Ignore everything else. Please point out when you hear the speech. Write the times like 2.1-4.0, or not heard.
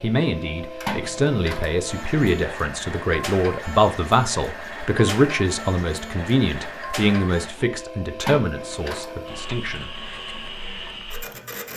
0.0-9.9.